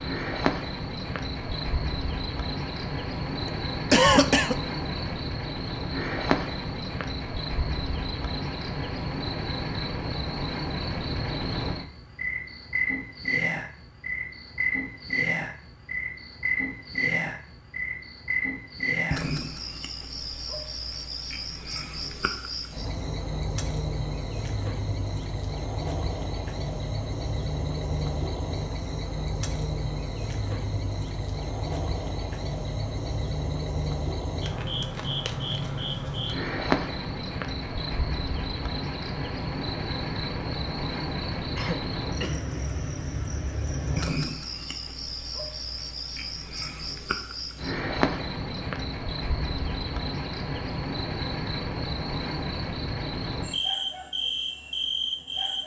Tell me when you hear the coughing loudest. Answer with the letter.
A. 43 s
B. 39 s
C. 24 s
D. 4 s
D.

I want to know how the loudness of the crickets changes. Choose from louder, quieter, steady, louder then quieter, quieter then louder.
steady.